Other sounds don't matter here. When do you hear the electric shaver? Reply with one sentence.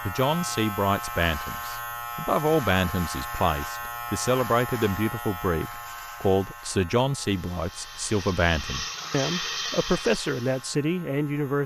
You can hear the electric shaver from 0.0 to 11.6 s.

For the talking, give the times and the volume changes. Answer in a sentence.
The talking can be heard from 0.0 to 11.6 s, at a steady volume.